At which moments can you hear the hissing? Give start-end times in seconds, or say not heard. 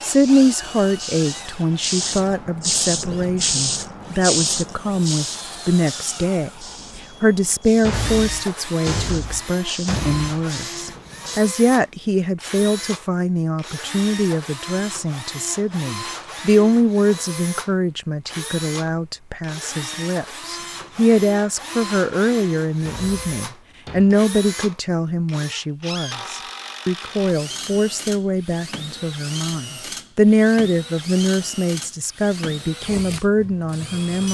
0.0-11.4.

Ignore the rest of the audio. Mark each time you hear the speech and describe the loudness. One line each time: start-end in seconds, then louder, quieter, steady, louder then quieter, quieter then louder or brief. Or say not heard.
0.0-34.2 steady.